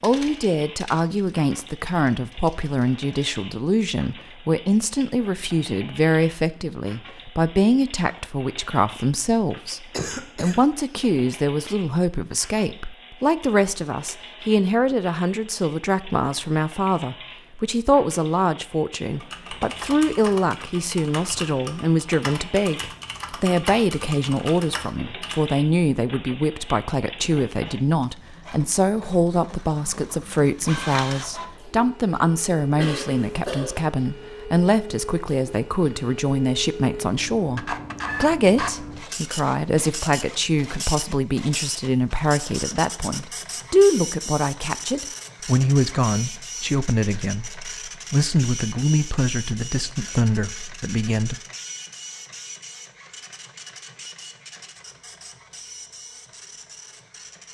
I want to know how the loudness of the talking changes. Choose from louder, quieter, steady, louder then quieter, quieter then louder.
steady.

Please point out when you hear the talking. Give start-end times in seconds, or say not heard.
0.0-51.4.